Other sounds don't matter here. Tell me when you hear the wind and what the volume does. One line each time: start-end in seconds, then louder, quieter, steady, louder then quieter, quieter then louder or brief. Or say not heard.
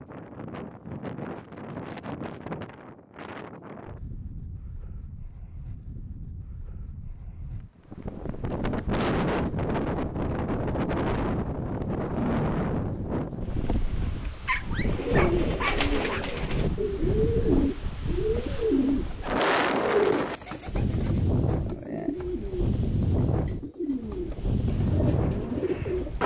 0.0-26.2 louder.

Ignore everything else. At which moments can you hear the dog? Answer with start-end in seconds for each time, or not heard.
14.4-16.3.